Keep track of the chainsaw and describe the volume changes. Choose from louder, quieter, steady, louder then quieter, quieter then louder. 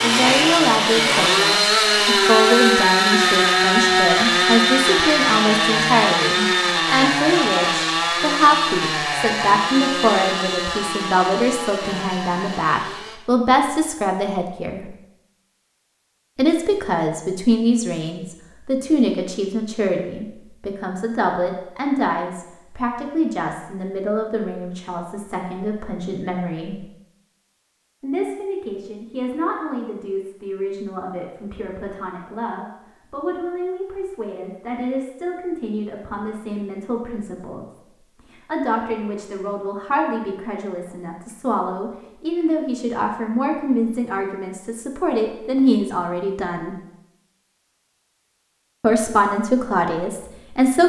quieter.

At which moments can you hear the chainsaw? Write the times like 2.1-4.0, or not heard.
0.0-13.2.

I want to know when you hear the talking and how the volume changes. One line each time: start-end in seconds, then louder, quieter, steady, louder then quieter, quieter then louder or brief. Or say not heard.
0.0-14.9 steady
16.4-26.9 quieter
28.0-46.8 louder
48.8-50.8 brief.